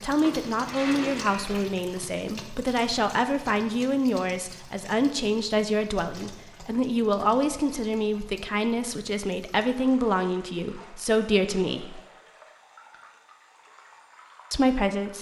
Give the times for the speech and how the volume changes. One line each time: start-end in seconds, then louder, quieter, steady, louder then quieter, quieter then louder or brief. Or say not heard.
0.0-12.0 steady
14.5-15.1 brief.